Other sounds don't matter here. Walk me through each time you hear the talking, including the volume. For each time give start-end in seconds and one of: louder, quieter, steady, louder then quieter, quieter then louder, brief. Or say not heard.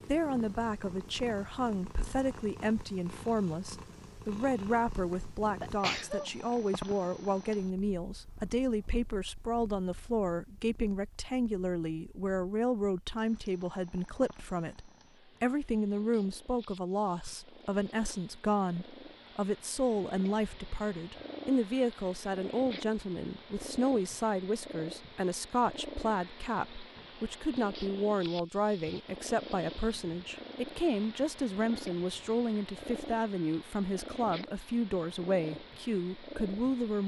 0.1-37.0 steady.